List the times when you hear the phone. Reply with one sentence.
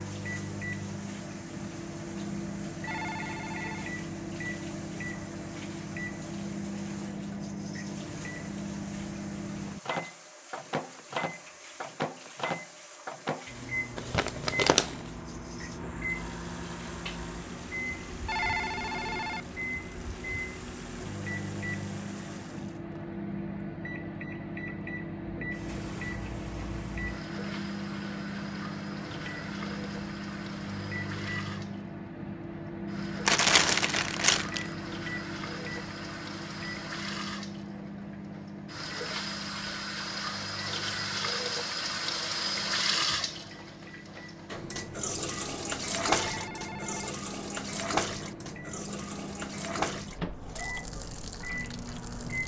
The phone can be heard from 2.9 to 4.0 s, from 18.2 to 19.4 s and from 46.1 to 47.1 s.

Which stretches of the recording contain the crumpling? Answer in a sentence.
You can hear the crumpling from 13.9 to 15.0 s and from 33.2 to 34.7 s.